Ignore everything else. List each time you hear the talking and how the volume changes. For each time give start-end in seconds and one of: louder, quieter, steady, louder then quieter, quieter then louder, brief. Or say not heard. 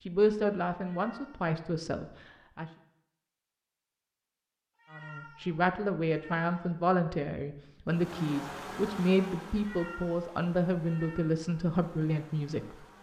0.1-2.7 brief
4.9-12.8 steady.